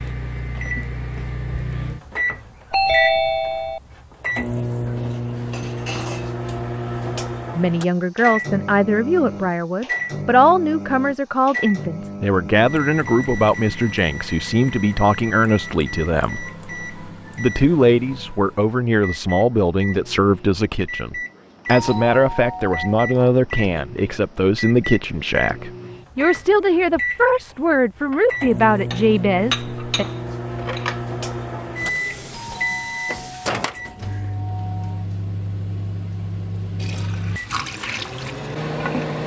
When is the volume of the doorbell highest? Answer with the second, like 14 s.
3 s.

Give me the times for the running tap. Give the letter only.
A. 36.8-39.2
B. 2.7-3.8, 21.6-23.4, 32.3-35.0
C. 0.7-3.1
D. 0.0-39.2
A.